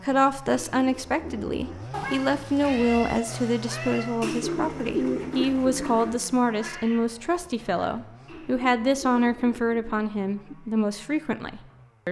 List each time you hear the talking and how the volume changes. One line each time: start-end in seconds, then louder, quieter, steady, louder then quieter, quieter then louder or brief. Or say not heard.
0.0-12.0 steady.